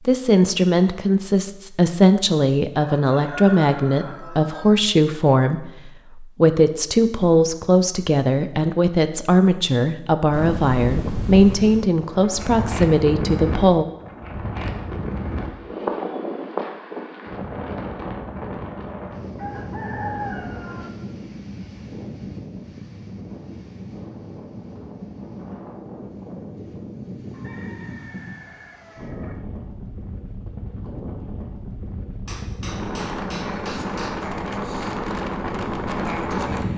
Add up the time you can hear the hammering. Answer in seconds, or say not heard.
2 s.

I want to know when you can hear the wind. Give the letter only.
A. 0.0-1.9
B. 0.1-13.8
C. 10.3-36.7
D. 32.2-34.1
C.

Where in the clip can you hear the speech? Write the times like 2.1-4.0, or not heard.
0.1-13.8.